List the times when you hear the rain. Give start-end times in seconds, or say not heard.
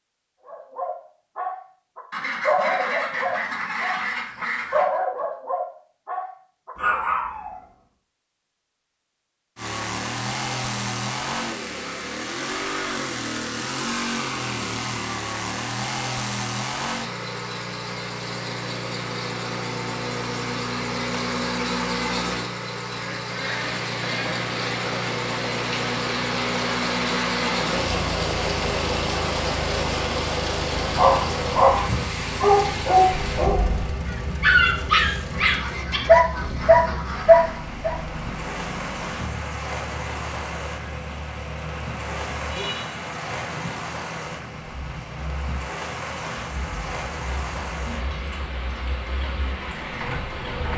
23.4-50.7.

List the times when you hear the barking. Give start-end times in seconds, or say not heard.
0.5-7.6, 30.8-38.0.